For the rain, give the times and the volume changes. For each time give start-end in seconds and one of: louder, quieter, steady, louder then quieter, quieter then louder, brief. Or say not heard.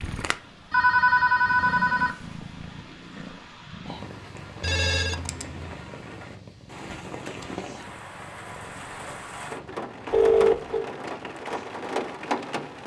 0.2-12.8 louder.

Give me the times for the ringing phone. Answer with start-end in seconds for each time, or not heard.
0.7-2.1, 4.6-5.7, 10.1-10.8.